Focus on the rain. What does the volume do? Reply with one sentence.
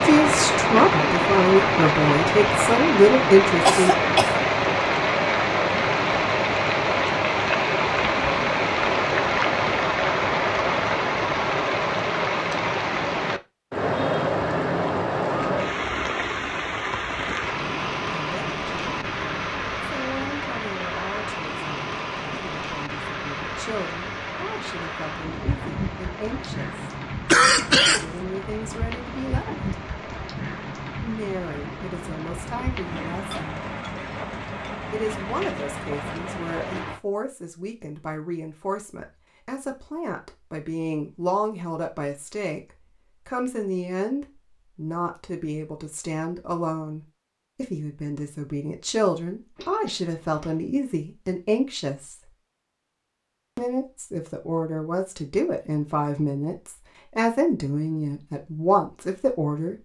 The loudness of the rain goes down.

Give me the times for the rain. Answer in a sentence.
The rain can be heard from 0.0 to 37.0 s.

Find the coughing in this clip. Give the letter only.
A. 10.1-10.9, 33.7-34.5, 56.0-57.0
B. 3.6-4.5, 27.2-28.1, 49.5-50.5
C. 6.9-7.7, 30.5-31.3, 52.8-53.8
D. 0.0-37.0
B.